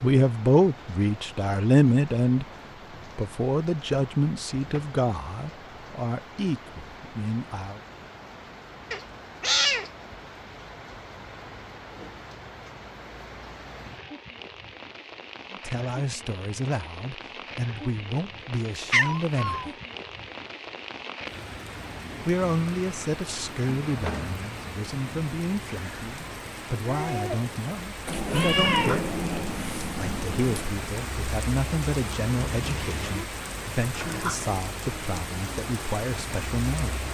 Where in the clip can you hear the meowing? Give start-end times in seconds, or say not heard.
8.9-9.9, 18.8-19.7, 28.1-30.8.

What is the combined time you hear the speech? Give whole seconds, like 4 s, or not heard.
25 s.